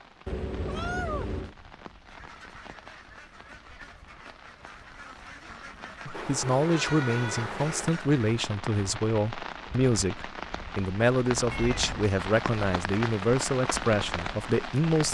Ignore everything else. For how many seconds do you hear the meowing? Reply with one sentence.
The meowing can be heard for 4 seconds in total.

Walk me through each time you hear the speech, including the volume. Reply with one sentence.
You can hear the speech from 6.0 to 15.0 s, at a steady volume.